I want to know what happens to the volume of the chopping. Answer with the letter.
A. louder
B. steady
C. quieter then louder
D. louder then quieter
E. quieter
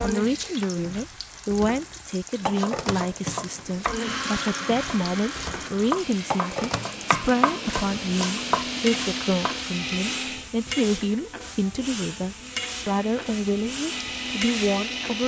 C.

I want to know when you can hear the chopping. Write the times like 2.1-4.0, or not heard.
2.4-9.7.